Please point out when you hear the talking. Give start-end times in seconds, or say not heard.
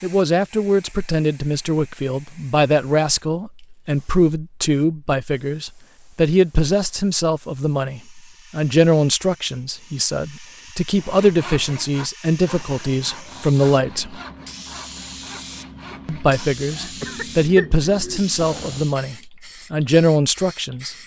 0.0-14.2, 16.1-21.0.